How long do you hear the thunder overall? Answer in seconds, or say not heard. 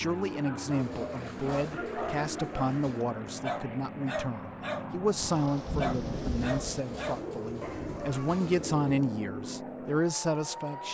2 s.